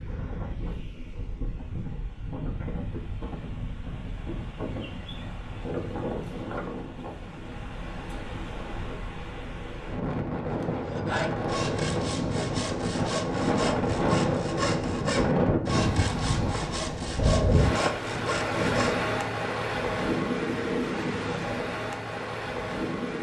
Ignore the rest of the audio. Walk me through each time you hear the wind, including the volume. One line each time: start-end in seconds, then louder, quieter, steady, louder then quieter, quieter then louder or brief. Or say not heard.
0.0-23.1 louder.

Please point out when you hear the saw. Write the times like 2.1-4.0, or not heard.
10.8-19.0.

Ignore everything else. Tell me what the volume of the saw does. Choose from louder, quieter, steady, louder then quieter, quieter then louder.
steady.